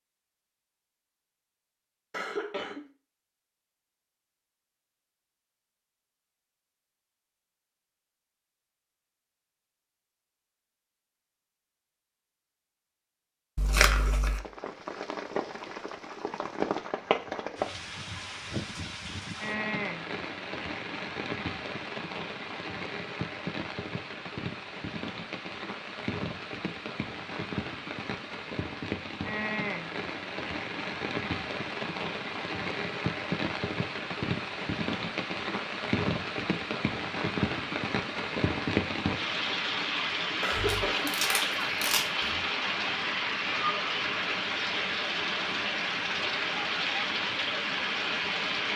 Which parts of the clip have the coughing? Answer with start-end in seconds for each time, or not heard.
2.1-2.9, 40.4-41.1.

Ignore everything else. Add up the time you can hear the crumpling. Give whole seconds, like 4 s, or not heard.
3 s.